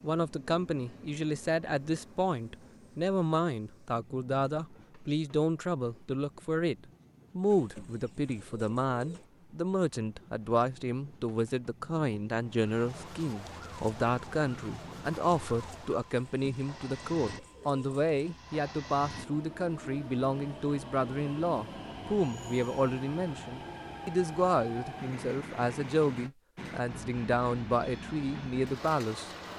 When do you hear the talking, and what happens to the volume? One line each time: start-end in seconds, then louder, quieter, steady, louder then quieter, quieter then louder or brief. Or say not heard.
0.0-6.8 steady
7.3-29.3 steady.